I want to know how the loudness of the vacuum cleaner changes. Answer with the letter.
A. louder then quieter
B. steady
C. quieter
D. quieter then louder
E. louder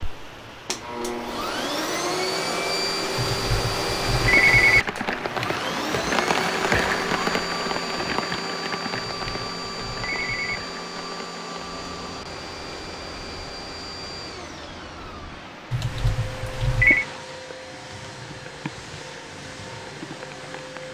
C.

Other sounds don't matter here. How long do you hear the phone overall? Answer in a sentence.
The phone can be heard for 5 seconds in total.